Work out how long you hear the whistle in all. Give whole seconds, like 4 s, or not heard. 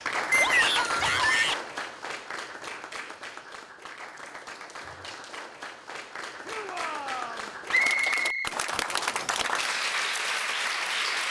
3 s.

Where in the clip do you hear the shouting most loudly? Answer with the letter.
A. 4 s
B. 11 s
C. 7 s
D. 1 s
D.